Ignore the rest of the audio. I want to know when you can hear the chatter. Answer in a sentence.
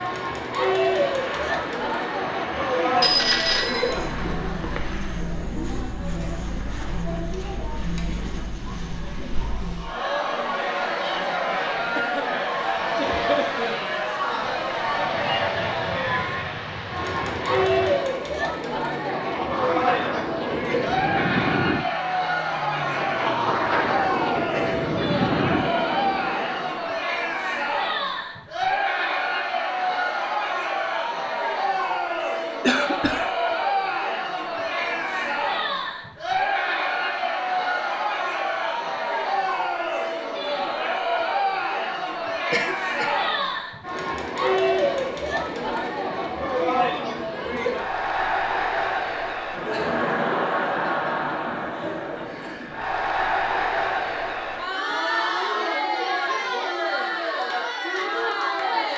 You can hear the chatter from 0.0 to 58.9 s.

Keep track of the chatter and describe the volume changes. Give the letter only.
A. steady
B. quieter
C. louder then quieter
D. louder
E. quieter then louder
A.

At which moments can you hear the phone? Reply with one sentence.
You can hear the phone from 3.0 to 4.9 s.